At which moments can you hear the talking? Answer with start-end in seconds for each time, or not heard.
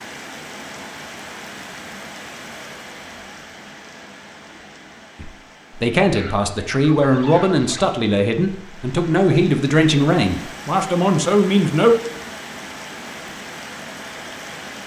5.2-11.9.